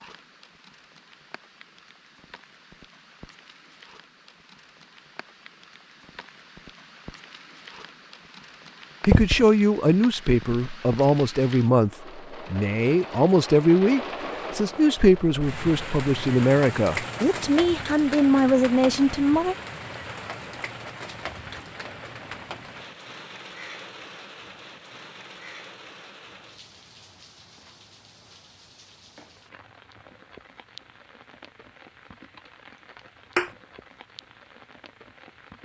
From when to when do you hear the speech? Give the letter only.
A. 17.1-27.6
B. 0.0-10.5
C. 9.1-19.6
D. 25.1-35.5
C.